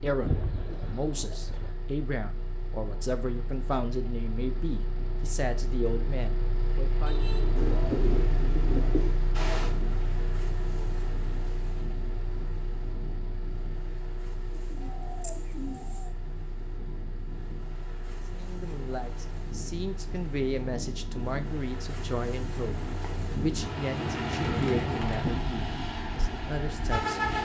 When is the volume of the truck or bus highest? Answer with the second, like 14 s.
27 s.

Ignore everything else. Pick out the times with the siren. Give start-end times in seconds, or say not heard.
not heard.